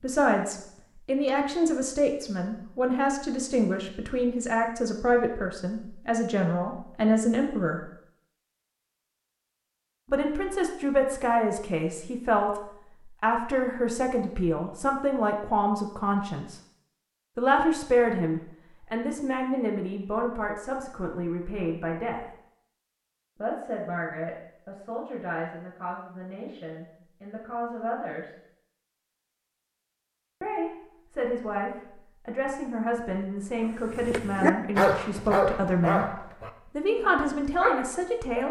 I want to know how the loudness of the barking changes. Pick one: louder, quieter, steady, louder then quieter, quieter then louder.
quieter then louder.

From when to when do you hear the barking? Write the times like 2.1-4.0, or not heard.
34.0-38.4.